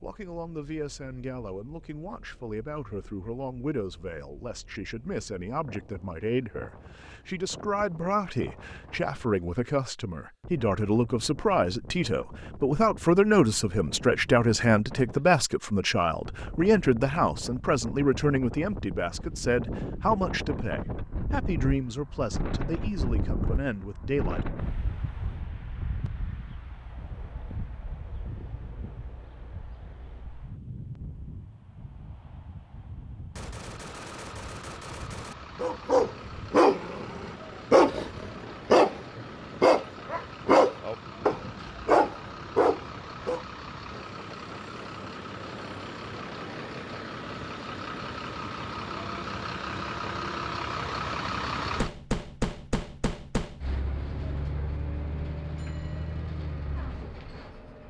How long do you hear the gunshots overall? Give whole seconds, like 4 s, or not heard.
2 s.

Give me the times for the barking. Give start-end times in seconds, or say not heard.
35.6-43.4.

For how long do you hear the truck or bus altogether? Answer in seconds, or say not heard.
24 s.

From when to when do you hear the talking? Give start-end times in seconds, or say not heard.
0.0-24.4.